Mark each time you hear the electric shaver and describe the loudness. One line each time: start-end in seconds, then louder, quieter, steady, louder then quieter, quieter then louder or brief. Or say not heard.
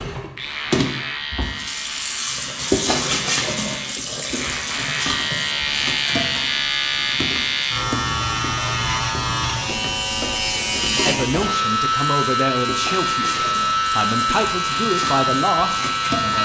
0.3-16.3 louder.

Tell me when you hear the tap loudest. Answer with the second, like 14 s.
3 s.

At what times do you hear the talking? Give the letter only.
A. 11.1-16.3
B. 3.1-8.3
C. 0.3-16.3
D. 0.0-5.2
A.